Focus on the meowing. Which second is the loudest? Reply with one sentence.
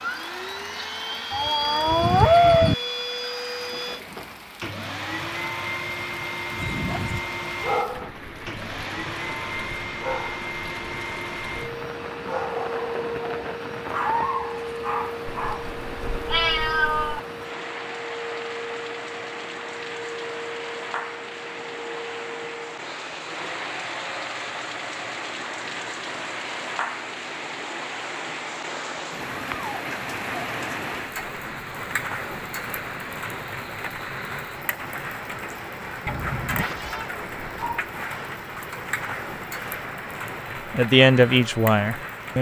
The volume of the meowing peaks at 2 seconds.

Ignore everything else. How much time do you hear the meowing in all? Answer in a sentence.
The meowing can be heard for 5 seconds in total.